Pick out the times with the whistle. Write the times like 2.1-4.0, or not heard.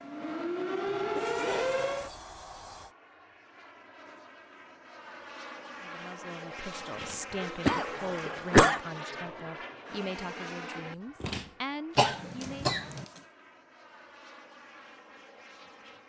not heard.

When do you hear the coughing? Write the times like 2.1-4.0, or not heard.
1.1-1.8, 7.7-8.8, 11.9-13.1.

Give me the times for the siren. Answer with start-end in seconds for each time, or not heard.
0.0-2.1.